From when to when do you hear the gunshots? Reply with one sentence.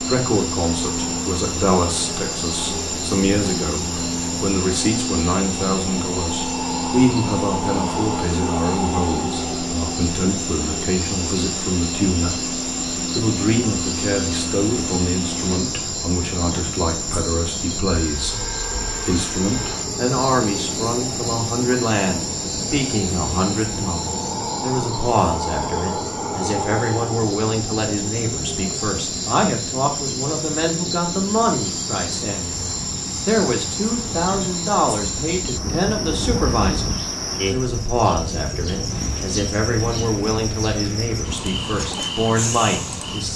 The gunshots can't be heard in this clip.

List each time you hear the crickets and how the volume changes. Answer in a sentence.
The crickets can be heard from 0.0 to 43.3 s, at a steady volume.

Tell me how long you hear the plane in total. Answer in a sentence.
The plane can be heard for 43 seconds in total.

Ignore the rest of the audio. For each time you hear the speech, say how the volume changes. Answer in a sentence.
You can hear the speech from 0.0 to 43.3 s, at a steady volume.